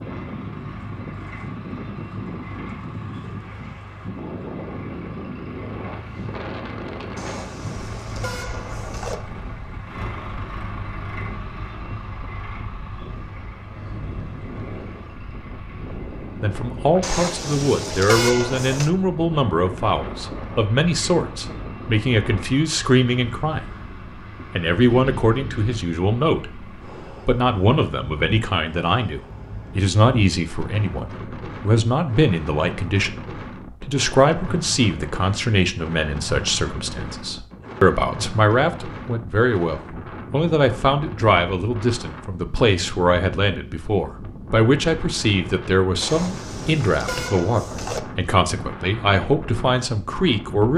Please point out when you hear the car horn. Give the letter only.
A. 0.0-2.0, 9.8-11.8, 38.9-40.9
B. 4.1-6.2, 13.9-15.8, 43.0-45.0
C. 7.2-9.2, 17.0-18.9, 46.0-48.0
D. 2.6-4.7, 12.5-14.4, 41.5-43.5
C.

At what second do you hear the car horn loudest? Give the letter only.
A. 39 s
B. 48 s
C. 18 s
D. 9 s
C.